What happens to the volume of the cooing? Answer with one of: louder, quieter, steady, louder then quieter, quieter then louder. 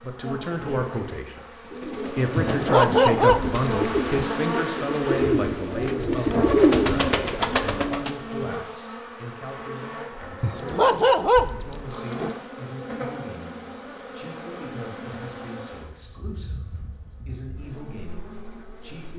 louder.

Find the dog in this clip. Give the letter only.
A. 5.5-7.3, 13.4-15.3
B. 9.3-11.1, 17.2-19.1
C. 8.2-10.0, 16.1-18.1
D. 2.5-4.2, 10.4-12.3
D.